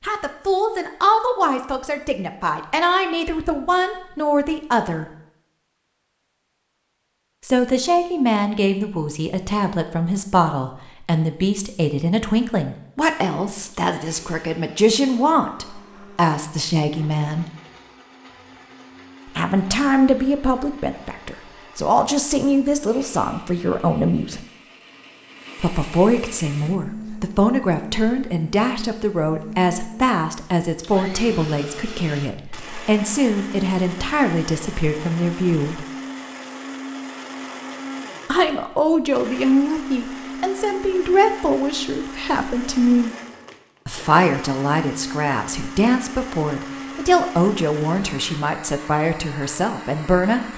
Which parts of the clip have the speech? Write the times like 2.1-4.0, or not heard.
0.0-5.0, 7.4-17.4, 19.4-24.4, 25.6-35.9, 38.2-43.1, 43.9-50.5.